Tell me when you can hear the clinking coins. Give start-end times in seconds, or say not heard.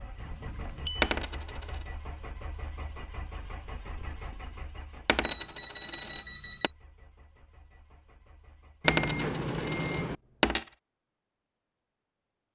1.0-1.8, 5.0-6.7, 8.8-10.7.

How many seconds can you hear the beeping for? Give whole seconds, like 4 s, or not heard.
4 s.